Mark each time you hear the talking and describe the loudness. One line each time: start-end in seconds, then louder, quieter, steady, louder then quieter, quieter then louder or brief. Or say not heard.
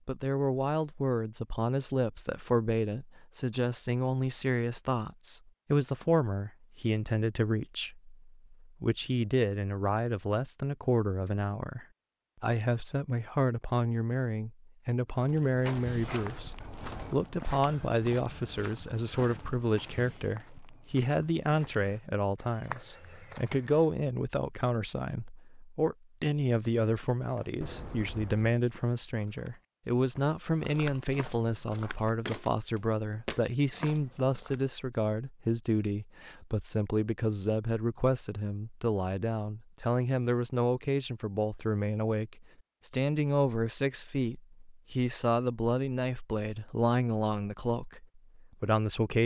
0.1-49.2 steady.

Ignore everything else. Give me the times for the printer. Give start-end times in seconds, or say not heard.
not heard.